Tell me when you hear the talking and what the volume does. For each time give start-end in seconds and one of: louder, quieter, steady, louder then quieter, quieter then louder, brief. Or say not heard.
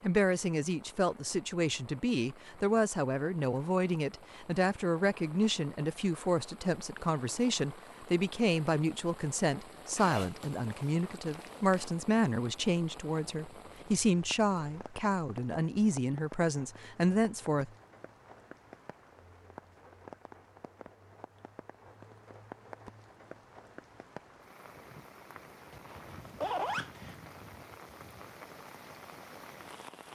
0.0-17.7 steady.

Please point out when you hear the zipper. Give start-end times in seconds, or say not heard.
9.9-11.9, 25.7-27.3.